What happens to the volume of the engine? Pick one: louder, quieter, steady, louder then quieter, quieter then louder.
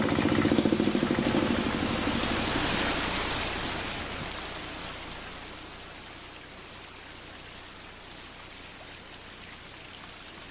quieter.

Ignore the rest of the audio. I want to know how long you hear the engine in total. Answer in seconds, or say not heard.
4 s.